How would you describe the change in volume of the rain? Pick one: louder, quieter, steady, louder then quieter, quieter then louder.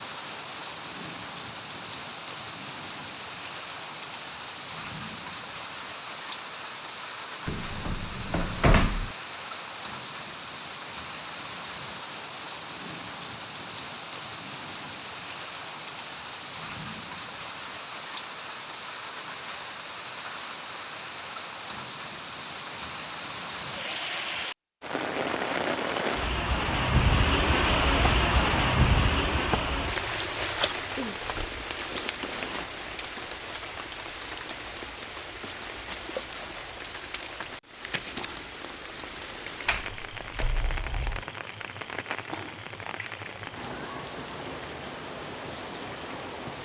louder then quieter.